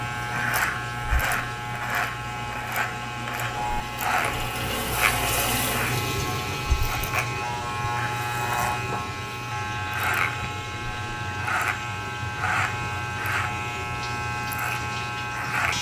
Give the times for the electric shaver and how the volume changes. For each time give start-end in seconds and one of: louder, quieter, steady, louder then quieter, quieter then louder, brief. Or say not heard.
0.0-15.7 steady.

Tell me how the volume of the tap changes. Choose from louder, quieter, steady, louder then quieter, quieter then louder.
louder then quieter.